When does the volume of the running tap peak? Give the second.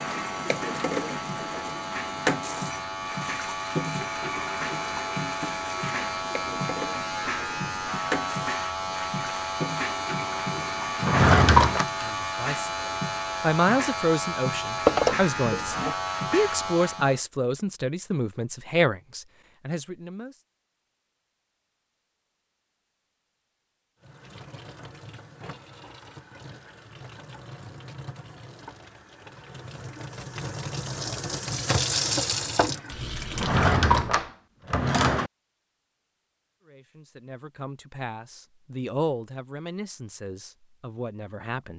32 s.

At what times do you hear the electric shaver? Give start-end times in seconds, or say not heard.
0.0-17.2.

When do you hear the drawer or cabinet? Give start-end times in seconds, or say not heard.
11.0-11.8, 14.8-15.9, 33.4-35.3.